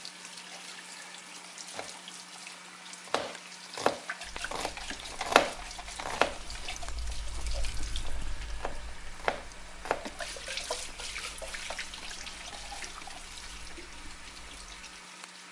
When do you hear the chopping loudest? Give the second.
5 s.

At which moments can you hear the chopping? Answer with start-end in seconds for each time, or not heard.
1.7-10.0.